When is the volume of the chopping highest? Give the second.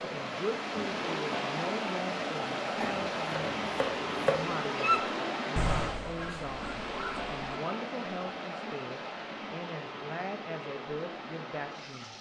4 s.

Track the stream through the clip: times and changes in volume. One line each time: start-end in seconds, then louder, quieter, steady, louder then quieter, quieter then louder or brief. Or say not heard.
0.0-12.1 quieter.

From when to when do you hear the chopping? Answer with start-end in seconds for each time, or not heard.
2.8-4.5.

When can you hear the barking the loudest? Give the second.
5 s.